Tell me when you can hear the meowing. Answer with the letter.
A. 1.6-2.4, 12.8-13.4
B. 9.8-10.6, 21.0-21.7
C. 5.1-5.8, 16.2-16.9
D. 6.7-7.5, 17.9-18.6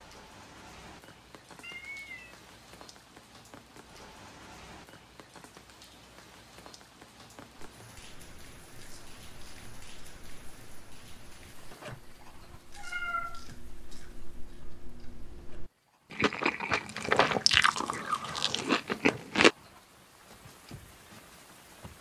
A.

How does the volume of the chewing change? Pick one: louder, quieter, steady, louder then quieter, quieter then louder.
louder.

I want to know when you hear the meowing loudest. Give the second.
13 s.